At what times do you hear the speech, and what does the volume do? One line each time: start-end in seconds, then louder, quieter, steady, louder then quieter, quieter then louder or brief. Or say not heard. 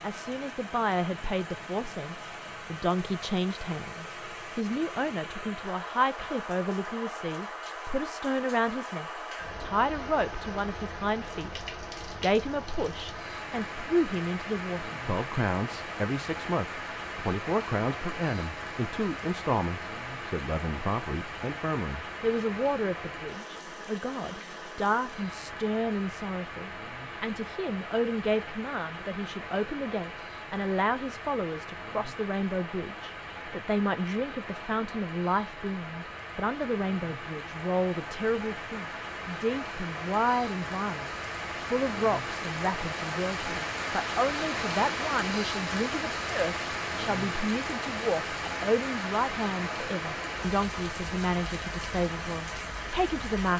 0.0-11.6 steady
12.2-53.5 steady.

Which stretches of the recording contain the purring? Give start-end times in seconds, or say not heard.
not heard.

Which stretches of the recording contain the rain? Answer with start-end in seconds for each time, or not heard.
0.0-53.5.